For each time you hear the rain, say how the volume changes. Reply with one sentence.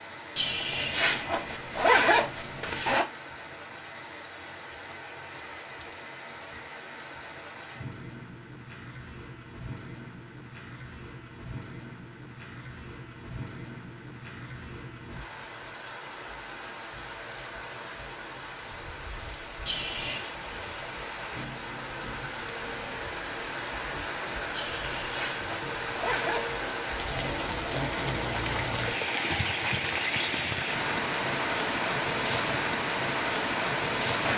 You can hear the rain from 0.0 to 34.3 s, getting louder.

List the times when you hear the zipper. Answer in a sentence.
You can hear the zipper from 0.3 to 3.0 s, from 19.6 to 20.4 s and from 24.5 to 26.6 s.